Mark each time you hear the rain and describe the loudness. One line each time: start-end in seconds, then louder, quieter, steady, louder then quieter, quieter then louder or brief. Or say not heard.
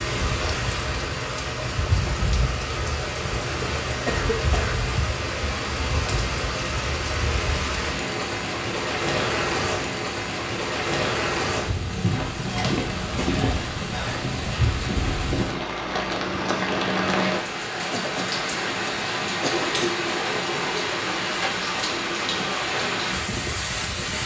0.0-24.2 steady.